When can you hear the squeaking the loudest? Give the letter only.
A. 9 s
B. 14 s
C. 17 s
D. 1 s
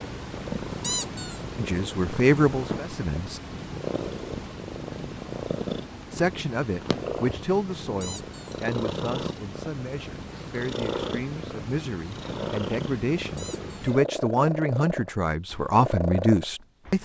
D.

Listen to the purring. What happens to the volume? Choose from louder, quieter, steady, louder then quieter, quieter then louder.
steady.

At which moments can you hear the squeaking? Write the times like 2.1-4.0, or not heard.
0.8-1.4, 8.0-8.6, 13.3-13.8.